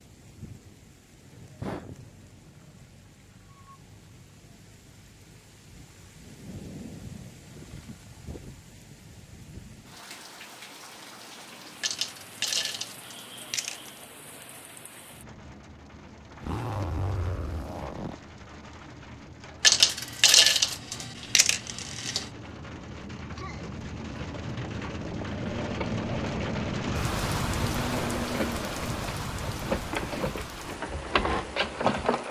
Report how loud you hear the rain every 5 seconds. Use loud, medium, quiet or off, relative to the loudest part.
quiet, quiet, quiet, quiet, medium, loud, medium.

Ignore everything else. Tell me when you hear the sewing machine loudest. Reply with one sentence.
The volume of the sewing machine peaks at 32 seconds.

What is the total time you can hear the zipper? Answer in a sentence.
The zipper can be heard for 2 seconds in total.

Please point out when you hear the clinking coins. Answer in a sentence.
You can hear the clinking coins from 11.8 to 13.9 s and from 19.6 to 22.2 s.